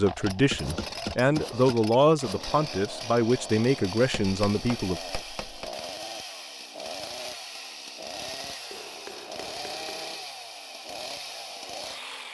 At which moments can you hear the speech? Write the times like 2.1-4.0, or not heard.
0.0-5.0.